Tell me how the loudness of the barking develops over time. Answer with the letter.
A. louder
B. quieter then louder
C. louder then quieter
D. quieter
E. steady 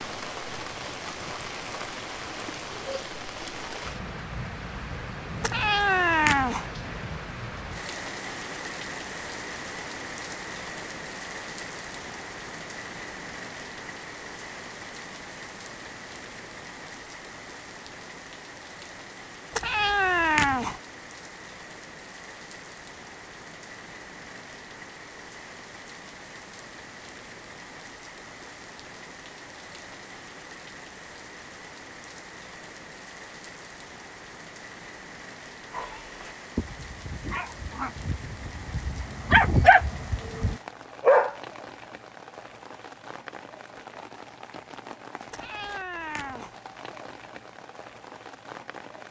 C.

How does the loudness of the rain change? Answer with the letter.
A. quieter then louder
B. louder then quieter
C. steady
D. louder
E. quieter
E.